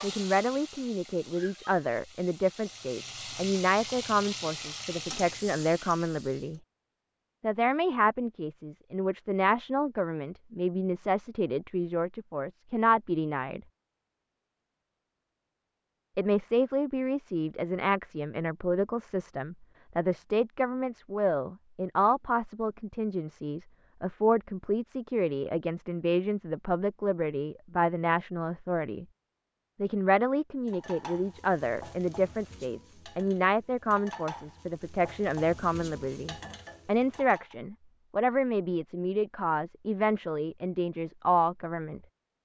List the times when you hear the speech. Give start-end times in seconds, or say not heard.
0.0-6.6, 7.4-13.6, 16.1-29.1, 29.8-42.0.